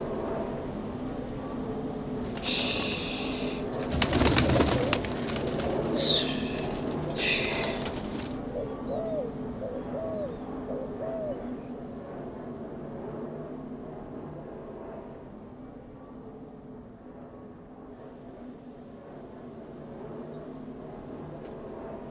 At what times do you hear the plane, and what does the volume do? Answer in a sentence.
The plane can be heard from 0.0 to 22.0 s, getting quieter.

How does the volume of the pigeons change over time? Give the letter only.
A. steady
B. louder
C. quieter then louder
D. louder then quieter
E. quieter
E.